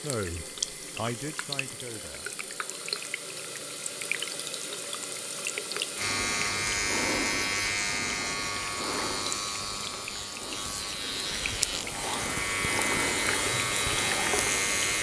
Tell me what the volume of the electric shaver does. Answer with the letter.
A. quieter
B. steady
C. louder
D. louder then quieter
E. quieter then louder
E.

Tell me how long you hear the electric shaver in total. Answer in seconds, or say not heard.
9 s.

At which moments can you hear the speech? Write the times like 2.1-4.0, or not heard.
0.0-2.3.